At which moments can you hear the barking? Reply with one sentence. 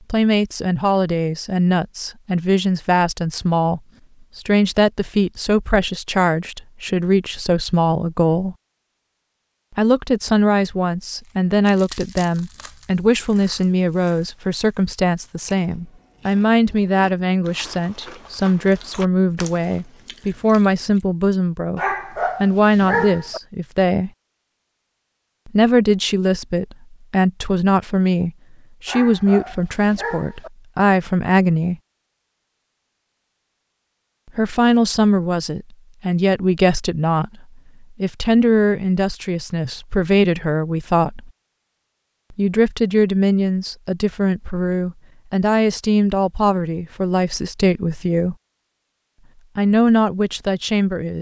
You can hear the barking from 21.8 to 23.4 s and from 28.9 to 30.5 s.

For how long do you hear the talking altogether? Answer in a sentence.
You can hear the talking for 44 seconds altogether.